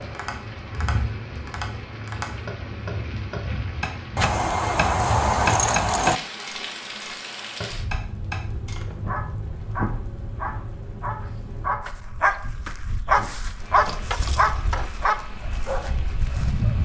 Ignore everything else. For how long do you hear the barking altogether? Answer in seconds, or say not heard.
8 s.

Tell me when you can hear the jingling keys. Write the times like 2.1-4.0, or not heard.
4.2-6.2, 13.8-14.9.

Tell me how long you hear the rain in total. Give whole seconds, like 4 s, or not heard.
17 s.